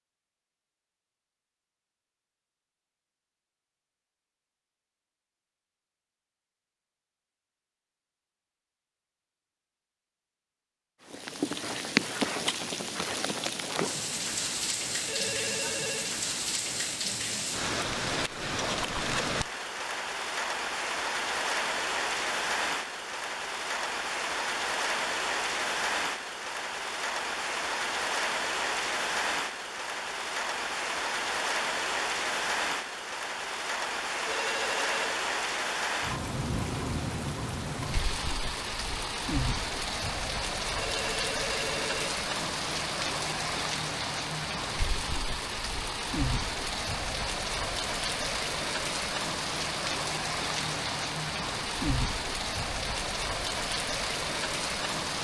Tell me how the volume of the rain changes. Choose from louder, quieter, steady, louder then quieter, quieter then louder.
steady.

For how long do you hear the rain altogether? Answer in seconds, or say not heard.
44 s.